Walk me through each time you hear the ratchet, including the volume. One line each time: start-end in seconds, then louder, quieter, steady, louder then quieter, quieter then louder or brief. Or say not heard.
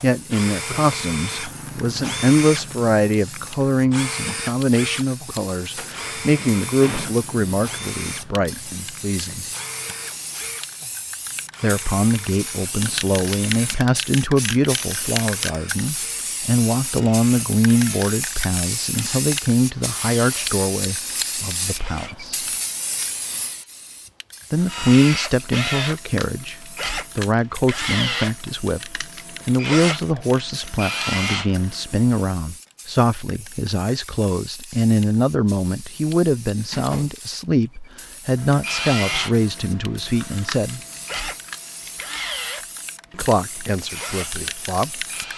not heard.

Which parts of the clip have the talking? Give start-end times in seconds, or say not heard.
0.0-9.4, 11.6-22.4, 24.5-40.8, 43.1-45.0.